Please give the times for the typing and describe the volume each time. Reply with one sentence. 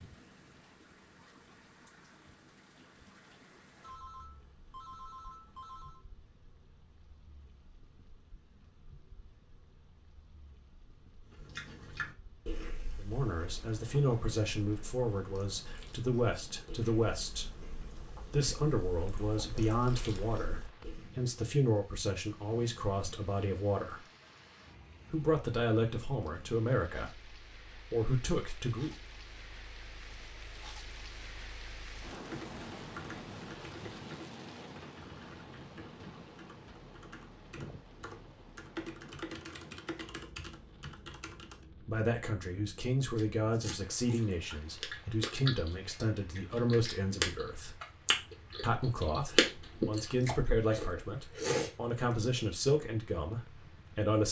The typing can be heard from 32.1 to 41.6 s, getting quieter then louder.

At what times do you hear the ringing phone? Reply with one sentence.
You can hear the ringing phone from 3.8 to 6.0 s.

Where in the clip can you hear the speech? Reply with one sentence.
The speech can be heard from 12.9 to 24.1 s, from 25.1 to 28.9 s, from 41.8 to 47.8 s and from 48.6 to 54.2 s.